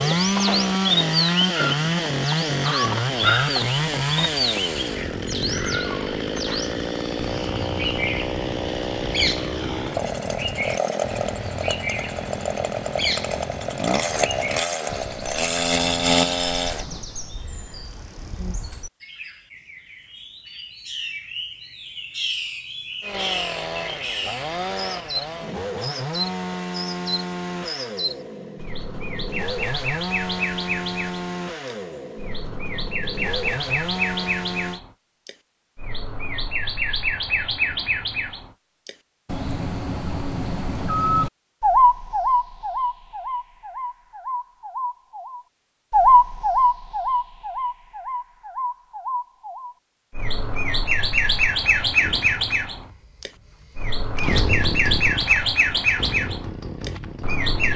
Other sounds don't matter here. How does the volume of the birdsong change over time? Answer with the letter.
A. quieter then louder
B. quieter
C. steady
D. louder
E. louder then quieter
A.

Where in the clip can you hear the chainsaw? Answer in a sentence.
You can hear the chainsaw from 0.0 to 16.9 s, from 23.0 to 34.8 s and from 52.0 to 57.7 s.